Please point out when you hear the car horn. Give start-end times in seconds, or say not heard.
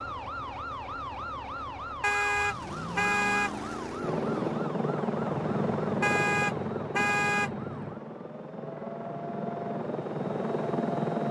2.0-3.5, 6.0-7.5.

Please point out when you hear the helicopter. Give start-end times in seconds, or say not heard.
4.0-11.2.